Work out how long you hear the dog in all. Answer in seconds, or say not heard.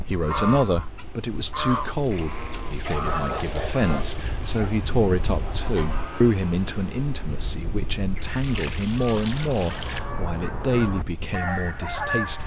3 s.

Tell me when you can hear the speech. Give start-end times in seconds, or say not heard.
0.0-12.4.